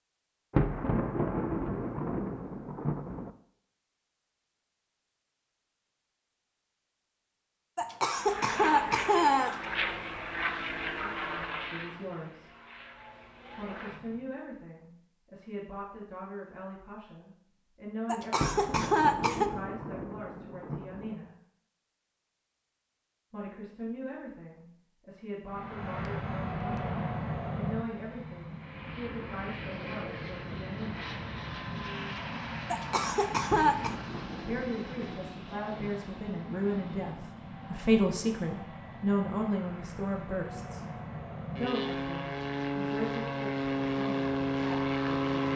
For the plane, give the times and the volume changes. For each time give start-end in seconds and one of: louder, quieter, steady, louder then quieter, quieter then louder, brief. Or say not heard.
8.2-14.2 quieter
25.4-45.5 quieter then louder.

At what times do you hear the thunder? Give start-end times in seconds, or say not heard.
0.5-3.3, 18.4-21.1, 33.5-36.1.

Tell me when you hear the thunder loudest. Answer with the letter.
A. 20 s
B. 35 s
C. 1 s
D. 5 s
C.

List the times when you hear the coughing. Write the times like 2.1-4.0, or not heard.
7.8-9.6, 18.1-19.5, 32.7-33.9.